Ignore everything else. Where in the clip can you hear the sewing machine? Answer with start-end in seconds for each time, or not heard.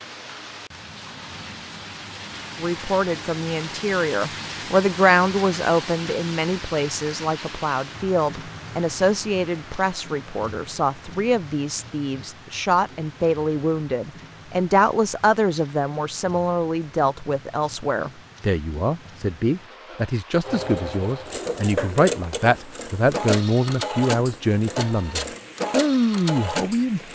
20.4-27.0.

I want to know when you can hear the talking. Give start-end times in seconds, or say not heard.
2.6-27.0.